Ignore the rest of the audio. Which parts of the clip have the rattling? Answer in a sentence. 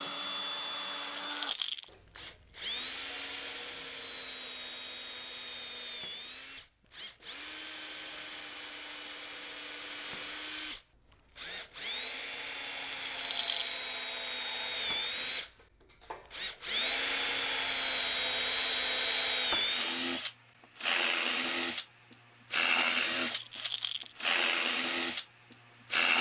You can hear the rattling from 0.9 to 1.9 s, from 12.8 to 13.8 s and from 23.1 to 24.1 s.